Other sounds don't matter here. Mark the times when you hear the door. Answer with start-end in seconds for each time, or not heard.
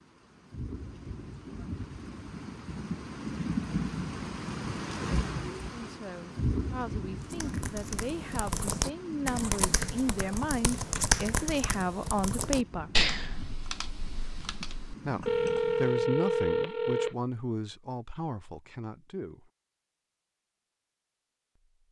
not heard.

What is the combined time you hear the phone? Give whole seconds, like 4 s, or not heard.
2 s.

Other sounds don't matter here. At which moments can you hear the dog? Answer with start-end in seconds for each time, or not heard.
not heard.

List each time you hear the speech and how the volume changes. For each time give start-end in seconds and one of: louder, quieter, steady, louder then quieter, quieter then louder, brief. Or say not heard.
5.6-12.9 louder
15.1-19.5 quieter.